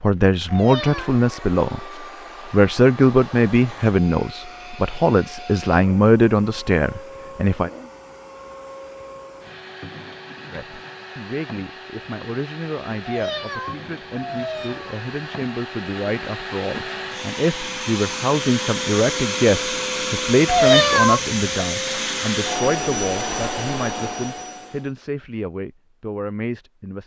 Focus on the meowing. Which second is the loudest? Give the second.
21 s.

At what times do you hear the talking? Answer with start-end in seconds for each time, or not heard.
0.0-7.7, 10.5-27.0.